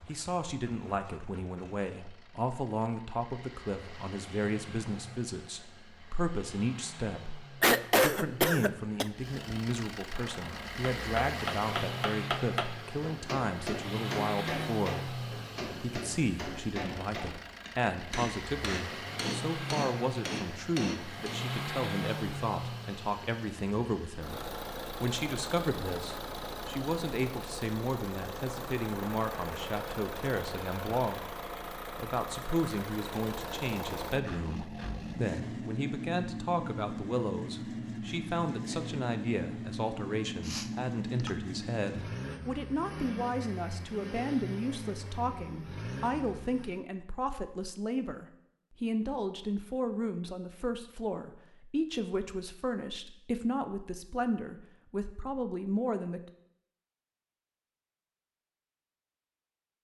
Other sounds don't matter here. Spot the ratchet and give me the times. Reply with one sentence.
You can't hear the ratchet here.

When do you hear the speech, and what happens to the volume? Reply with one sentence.
You can hear the speech from 0.1 to 31.2 s, at a steady volume; and from 31.9 to 56.2 s, at a steady volume.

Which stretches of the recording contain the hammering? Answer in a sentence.
The hammering can be heard from 10.1 to 21.4 s.